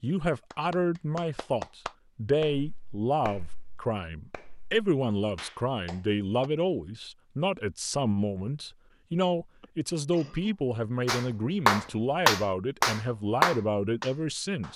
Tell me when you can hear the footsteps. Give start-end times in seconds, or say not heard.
not heard.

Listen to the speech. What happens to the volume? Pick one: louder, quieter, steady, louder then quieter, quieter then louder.
steady.